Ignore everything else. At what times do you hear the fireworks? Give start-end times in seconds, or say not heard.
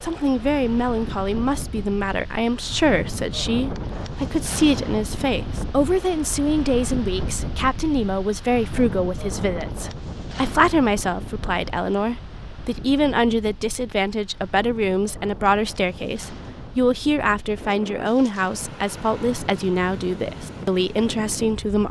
not heard.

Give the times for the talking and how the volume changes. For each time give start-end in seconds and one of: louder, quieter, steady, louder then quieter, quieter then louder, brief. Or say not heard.
0.0-21.8 steady.